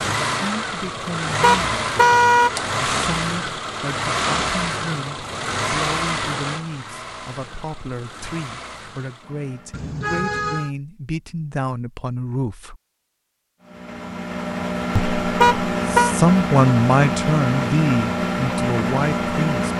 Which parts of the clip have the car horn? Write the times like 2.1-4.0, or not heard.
1.4-2.5, 9.7-10.7, 15.4-16.1.